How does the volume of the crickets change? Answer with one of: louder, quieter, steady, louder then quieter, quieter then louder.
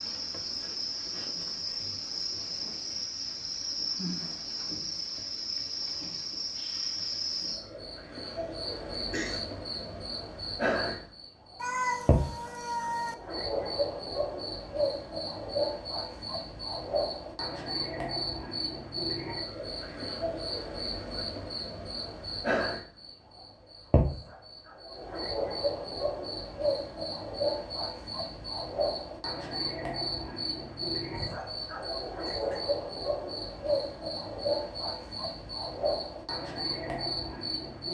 steady.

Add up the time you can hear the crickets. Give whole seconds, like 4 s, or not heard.
38 s.